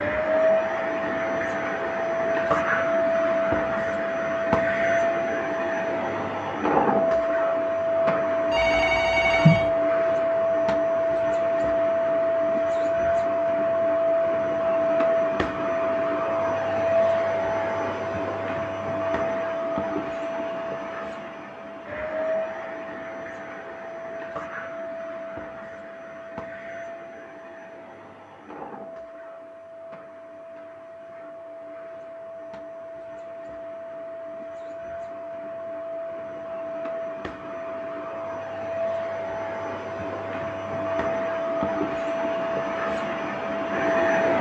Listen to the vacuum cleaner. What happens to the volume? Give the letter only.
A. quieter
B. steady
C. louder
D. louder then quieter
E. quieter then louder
E.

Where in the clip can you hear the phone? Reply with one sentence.
The phone can be heard from 8.5 to 9.7 s.